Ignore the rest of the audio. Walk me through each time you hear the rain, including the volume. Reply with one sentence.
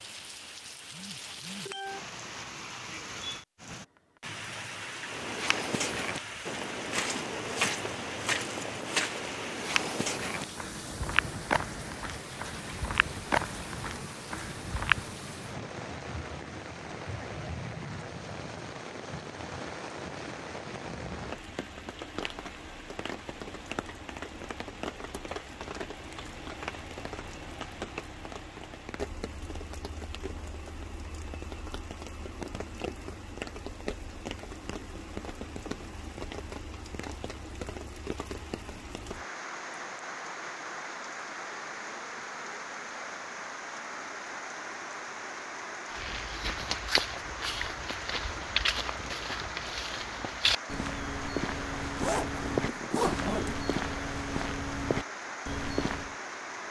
You can hear the rain from 0.0 to 56.6 s, at a steady volume.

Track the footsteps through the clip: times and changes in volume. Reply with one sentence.
You can hear the footsteps from 5.0 to 15.2 s, at a steady volume; and from 45.9 to 56.1 s, at a steady volume.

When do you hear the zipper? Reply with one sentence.
The zipper can be heard from 52.0 to 53.7 s.